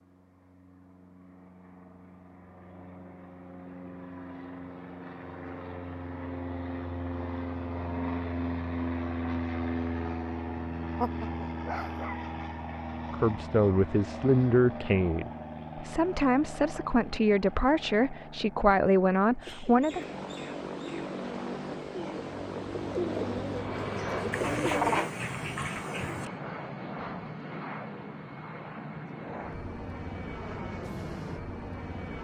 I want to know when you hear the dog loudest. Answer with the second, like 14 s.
25 s.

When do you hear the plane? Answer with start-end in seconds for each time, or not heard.
0.1-32.2.